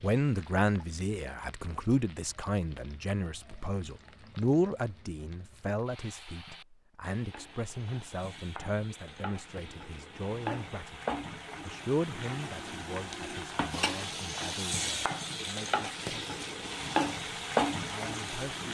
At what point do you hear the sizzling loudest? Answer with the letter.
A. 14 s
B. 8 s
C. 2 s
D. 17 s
D.